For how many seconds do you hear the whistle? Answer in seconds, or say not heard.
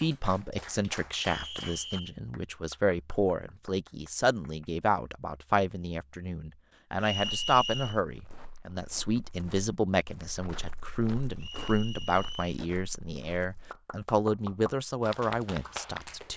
3 s.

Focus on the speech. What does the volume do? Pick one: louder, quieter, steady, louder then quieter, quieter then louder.
steady.